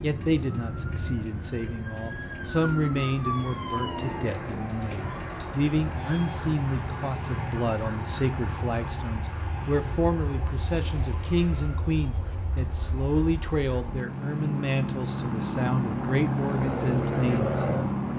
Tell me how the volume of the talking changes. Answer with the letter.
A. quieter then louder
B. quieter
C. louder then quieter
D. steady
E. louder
D.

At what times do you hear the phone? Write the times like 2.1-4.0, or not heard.
not heard.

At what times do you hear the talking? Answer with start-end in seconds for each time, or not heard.
0.0-17.9.